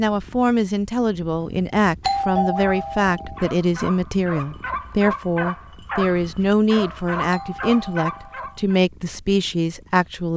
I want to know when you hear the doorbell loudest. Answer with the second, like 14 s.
2 s.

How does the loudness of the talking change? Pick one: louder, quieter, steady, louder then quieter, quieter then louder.
steady.